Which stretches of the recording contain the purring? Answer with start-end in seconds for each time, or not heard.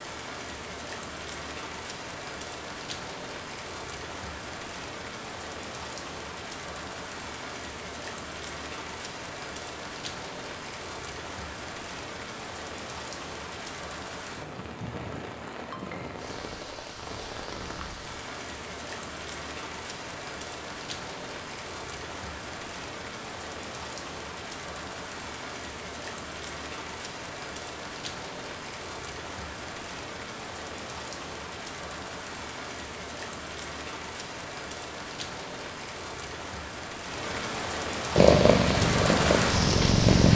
38.1-40.3.